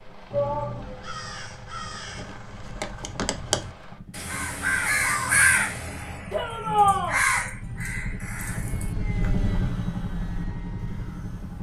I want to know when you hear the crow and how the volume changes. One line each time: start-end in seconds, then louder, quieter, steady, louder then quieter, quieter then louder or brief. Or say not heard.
0.3-11.5 louder then quieter.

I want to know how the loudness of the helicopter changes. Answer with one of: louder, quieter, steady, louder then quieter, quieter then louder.
louder.